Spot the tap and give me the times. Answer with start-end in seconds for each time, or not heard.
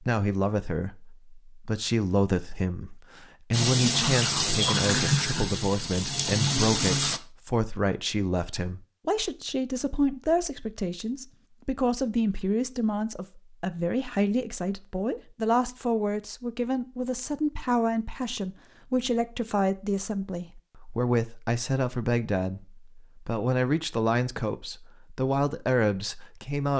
3.5-7.2.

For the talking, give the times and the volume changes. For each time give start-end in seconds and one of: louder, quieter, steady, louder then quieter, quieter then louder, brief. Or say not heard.
0.0-26.7 steady.